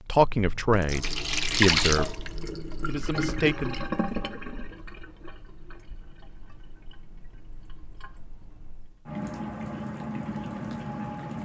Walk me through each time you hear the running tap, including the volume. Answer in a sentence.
You can hear the running tap from 0.1 to 11.4 s, getting quieter then louder.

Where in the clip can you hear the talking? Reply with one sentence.
You can hear the talking from 0.1 to 3.8 s.